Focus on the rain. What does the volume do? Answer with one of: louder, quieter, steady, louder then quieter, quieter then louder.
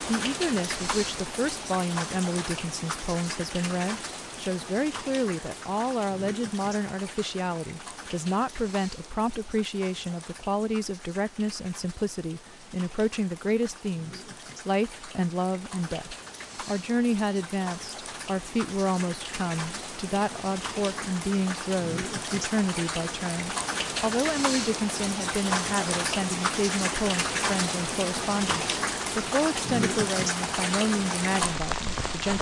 quieter then louder.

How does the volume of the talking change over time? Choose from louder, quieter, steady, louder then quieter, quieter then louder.
steady.